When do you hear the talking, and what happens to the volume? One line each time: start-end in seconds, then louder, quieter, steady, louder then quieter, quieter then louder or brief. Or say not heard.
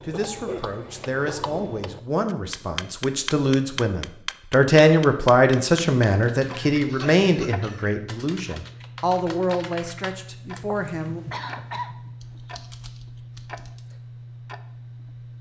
0.0-11.2 louder then quieter.